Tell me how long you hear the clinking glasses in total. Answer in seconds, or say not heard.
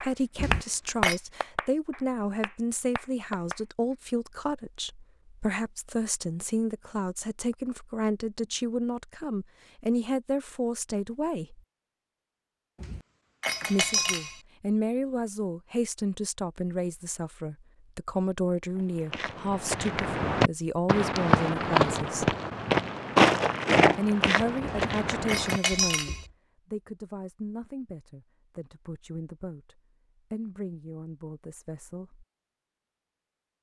4 s.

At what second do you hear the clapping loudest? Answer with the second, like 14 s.
1 s.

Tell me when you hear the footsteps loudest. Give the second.
23 s.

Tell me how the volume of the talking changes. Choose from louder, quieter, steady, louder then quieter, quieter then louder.
quieter.